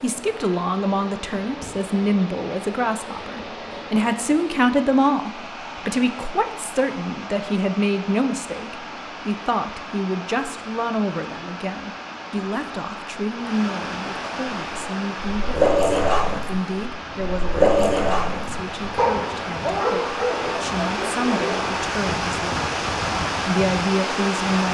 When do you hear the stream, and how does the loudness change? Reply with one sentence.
You can hear the stream from 0.0 to 24.6 s, getting louder.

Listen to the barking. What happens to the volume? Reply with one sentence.
The loudness of the barking goes down.